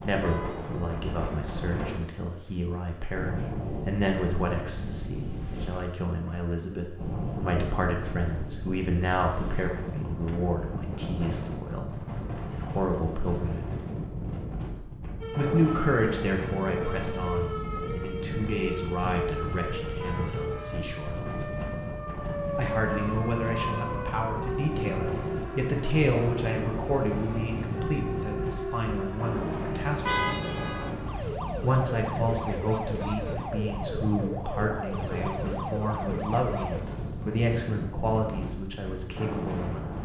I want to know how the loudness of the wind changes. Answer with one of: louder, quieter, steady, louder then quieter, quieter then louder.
steady.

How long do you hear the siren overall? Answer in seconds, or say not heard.
22 s.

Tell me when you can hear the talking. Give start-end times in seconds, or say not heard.
0.0-13.7, 15.3-21.2, 22.6-30.2, 31.6-40.0.